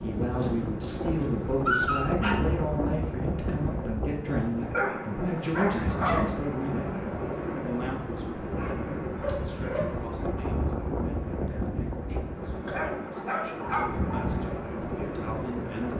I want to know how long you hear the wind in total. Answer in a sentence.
You can hear the wind for 16 seconds altogether.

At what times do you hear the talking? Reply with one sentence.
The talking can be heard from 0.0 to 15.9 s.